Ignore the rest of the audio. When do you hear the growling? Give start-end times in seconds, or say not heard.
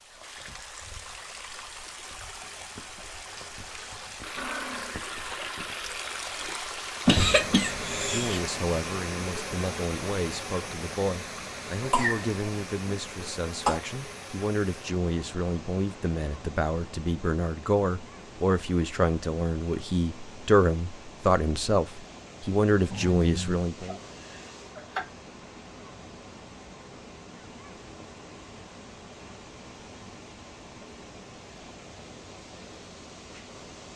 4.3-5.0, 22.9-23.6.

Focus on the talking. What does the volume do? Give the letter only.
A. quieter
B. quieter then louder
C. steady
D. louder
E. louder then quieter
D.